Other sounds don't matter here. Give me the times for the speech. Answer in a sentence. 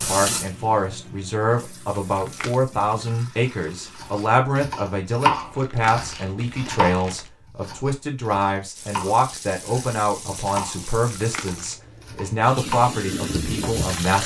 The speech can be heard from 0.0 to 14.2 s.